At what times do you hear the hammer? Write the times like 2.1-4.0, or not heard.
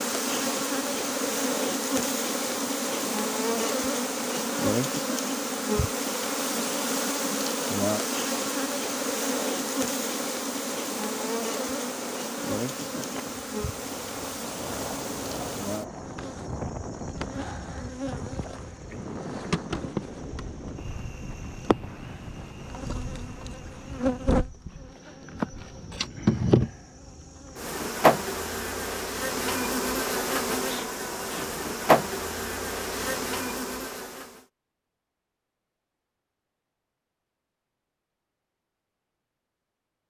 not heard.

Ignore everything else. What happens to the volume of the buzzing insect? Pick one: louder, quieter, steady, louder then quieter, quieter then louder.
quieter then louder.